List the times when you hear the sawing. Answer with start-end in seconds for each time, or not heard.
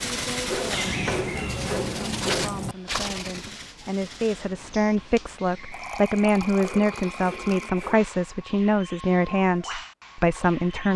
0.5-2.5, 6.6-8.1.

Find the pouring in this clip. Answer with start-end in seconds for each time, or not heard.
0.7-2.8, 5.7-7.7.